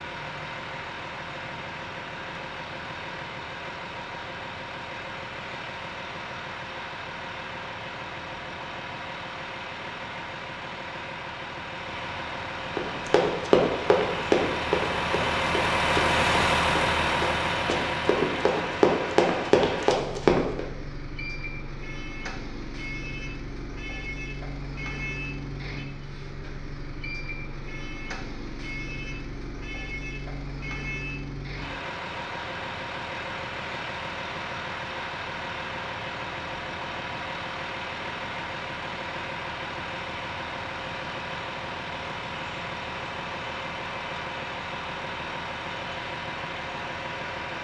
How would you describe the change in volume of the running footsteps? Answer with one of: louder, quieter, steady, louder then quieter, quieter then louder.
quieter then louder.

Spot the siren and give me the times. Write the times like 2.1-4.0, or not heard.
not heard.